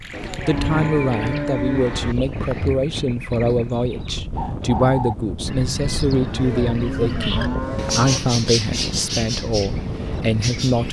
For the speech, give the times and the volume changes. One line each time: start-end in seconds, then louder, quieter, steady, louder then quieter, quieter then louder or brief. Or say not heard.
0.5-10.8 steady.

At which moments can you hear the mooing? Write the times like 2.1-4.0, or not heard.
0.1-2.1, 6.2-8.2.